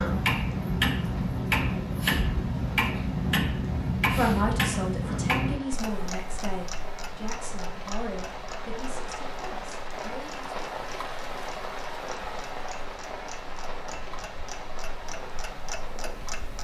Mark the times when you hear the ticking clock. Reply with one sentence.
The ticking clock can be heard from 0.0 to 16.5 s.